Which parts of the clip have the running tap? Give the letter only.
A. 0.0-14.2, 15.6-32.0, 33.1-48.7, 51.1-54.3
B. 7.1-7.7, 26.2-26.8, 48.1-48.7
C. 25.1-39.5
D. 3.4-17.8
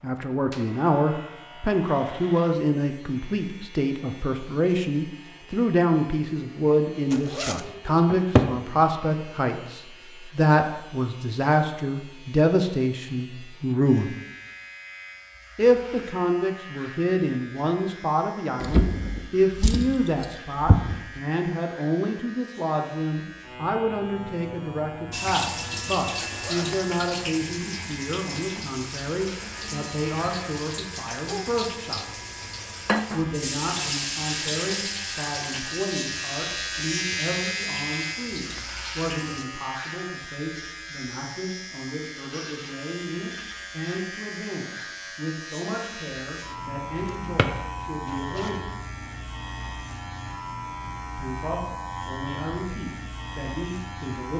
C.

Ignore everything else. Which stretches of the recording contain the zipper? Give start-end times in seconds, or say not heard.
7.1-7.7, 26.2-26.8, 48.1-48.7.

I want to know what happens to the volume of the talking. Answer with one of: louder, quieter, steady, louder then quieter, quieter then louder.
quieter.